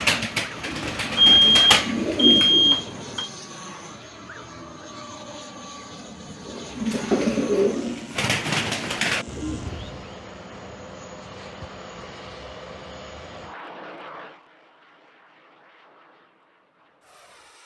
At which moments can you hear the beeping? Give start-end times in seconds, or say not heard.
1.1-3.3.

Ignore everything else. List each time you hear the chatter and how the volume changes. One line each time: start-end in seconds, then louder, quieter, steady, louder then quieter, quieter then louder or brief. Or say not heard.
not heard.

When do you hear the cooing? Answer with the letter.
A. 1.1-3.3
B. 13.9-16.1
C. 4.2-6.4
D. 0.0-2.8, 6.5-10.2
D.